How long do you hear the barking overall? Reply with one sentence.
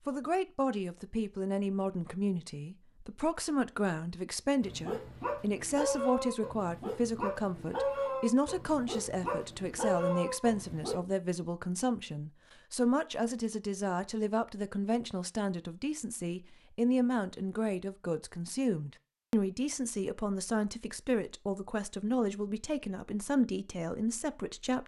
You can hear the barking for 6 seconds altogether.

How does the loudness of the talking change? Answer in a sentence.
The volume of the talking stays about the same.